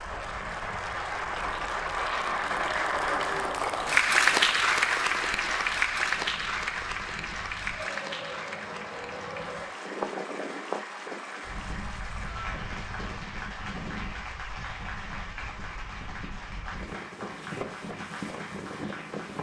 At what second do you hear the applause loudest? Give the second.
4 s.